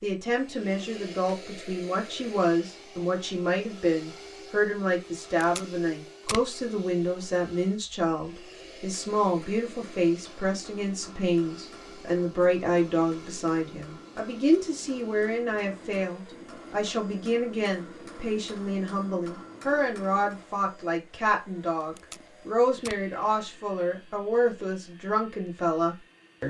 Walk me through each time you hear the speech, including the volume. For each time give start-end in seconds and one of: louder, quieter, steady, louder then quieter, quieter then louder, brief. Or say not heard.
0.0-26.4 steady.